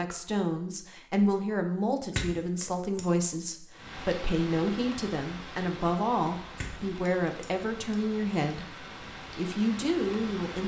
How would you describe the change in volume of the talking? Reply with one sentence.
The volume of the talking stays about the same.